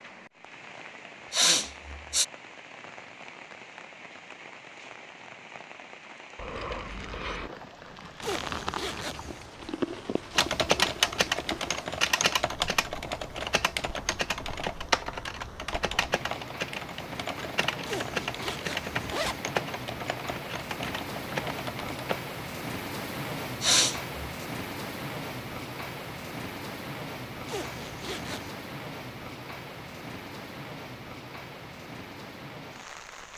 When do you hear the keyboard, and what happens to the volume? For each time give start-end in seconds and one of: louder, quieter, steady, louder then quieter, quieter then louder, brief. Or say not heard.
10.3-22.2 quieter.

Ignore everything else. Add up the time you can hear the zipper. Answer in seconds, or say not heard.
4 s.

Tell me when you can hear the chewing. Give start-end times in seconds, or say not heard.
6.3-11.8.